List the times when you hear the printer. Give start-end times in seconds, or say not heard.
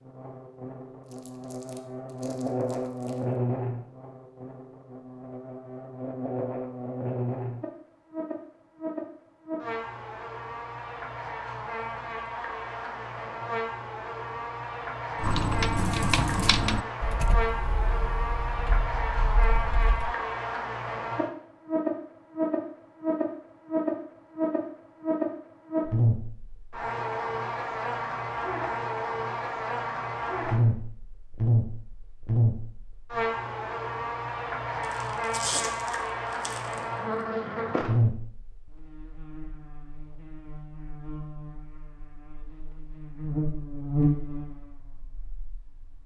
not heard.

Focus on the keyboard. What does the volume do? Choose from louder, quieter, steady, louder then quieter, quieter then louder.
quieter.